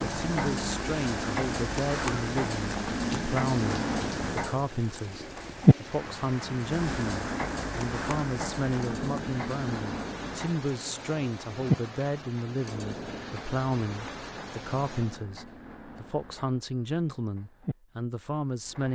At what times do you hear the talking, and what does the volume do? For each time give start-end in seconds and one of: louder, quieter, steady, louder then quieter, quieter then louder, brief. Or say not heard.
0.0-18.9 steady.